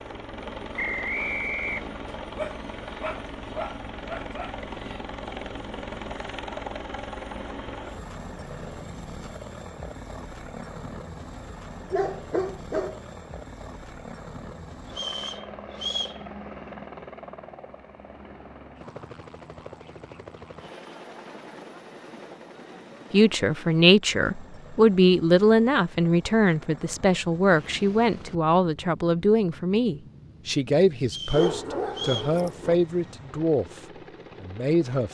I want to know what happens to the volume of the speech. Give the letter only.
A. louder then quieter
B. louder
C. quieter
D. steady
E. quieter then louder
C.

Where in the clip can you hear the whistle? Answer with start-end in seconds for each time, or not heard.
0.8-1.9, 14.9-16.2, 31.1-32.4.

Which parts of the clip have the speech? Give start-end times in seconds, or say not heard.
23.1-35.0.